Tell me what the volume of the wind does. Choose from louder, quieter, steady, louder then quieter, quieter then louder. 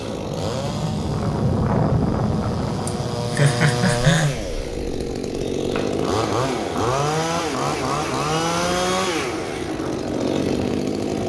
quieter.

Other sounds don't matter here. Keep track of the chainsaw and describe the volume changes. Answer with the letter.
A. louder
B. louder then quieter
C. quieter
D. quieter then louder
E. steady
A.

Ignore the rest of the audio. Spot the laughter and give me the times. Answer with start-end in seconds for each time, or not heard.
2.9-4.3.